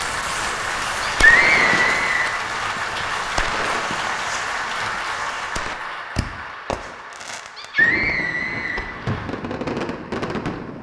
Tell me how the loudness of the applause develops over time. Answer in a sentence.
The loudness of the applause goes down.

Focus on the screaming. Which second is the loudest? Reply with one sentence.
The volume of the screaming peaks at 1 second.